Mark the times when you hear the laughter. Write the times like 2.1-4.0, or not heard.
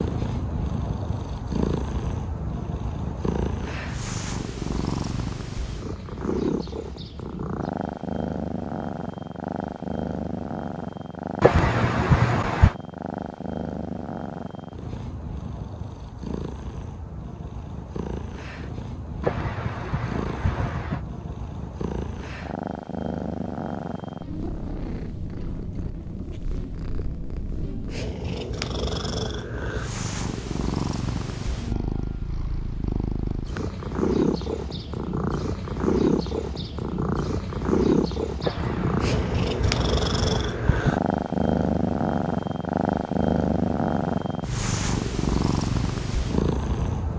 11.4-12.8, 19.2-21.1, 38.4-41.0.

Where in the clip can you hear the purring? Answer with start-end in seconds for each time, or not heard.
0.0-47.1.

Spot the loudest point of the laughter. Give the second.
12 s.